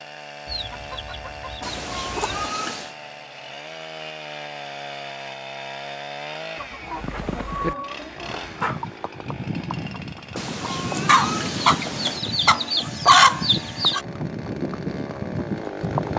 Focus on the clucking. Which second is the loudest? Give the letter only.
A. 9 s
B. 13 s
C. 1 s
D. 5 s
B.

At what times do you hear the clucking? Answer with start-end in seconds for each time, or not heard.
0.5-2.5, 6.5-8.8, 11.1-14.0.